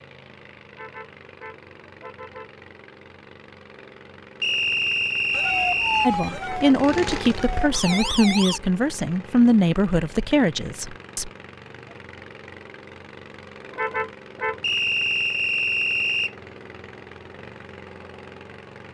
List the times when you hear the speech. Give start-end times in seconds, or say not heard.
6.0-11.3.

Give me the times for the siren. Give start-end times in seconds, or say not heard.
5.3-8.6.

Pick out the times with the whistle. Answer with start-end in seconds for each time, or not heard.
4.4-6.1, 14.6-16.4.